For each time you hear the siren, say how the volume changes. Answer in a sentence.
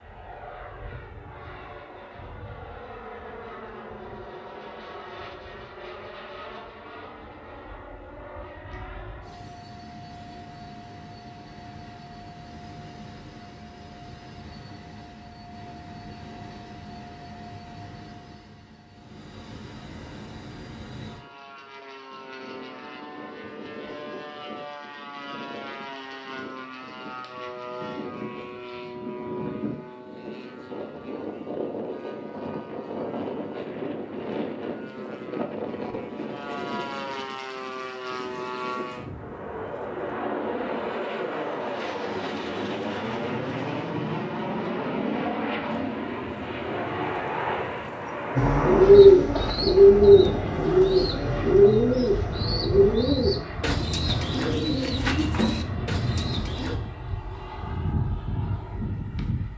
You can't hear the siren here.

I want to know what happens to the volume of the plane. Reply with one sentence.
The loudness of the plane goes up.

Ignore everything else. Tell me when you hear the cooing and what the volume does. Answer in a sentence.
The cooing can be heard from 48.4 to 56.8 s, getting quieter.